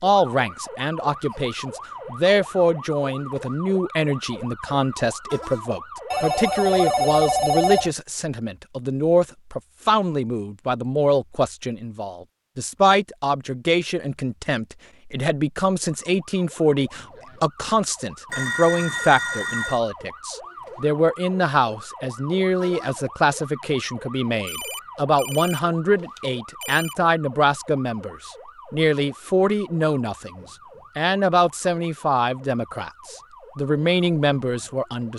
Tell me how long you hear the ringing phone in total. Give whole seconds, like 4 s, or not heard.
6 s.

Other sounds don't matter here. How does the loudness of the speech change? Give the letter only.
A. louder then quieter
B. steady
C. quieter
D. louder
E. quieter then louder
B.